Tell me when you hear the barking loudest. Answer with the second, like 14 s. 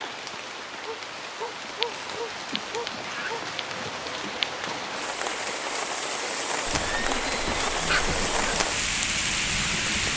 8 s.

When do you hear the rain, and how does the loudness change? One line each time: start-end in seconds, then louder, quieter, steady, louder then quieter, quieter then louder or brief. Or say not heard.
0.0-10.1 louder.